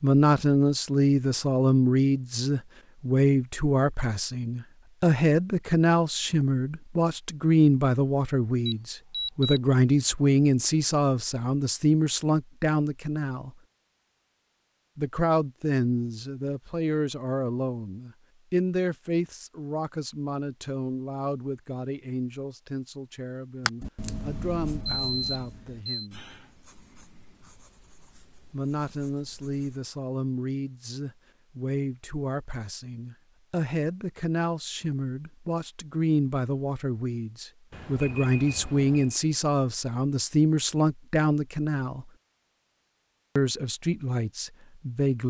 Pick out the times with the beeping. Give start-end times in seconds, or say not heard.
8.7-9.6, 24.9-26.1, 37.7-39.1.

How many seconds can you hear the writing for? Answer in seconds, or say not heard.
6 s.